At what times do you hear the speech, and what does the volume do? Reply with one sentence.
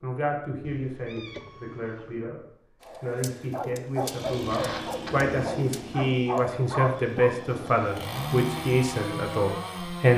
The speech can be heard from 0.0 to 10.1 s, getting louder.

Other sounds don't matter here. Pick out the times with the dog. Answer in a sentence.
The dog can be heard from 2.8 to 7.3 s.